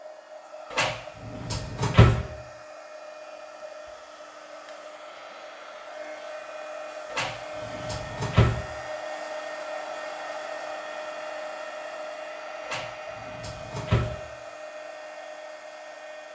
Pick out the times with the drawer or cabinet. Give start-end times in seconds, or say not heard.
0.7-2.2, 7.1-8.6, 12.7-14.2.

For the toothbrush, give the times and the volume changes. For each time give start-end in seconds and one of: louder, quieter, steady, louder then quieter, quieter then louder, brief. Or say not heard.
not heard.